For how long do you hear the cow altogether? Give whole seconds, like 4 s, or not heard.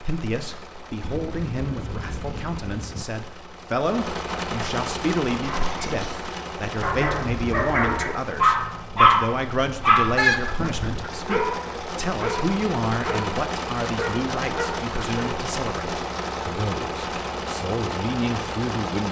not heard.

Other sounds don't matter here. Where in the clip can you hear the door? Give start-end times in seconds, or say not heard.
not heard.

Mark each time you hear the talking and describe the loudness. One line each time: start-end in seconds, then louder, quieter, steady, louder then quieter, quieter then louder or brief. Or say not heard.
0.0-19.0 steady.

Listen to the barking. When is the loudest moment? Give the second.
9 s.